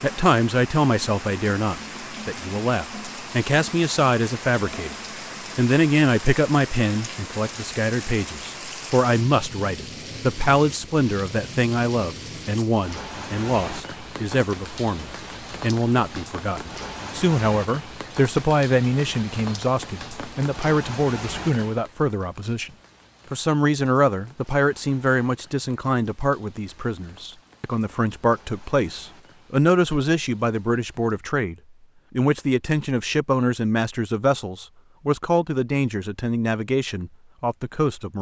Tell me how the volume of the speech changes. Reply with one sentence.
The loudness of the speech stays about the same.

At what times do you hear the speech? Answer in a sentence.
The speech can be heard from 0.0 to 5.0 s, from 5.5 to 22.7 s and from 23.3 to 38.1 s.